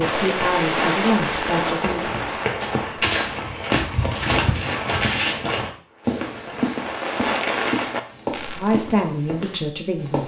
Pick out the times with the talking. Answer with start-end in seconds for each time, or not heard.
0.0-2.1, 8.5-10.2.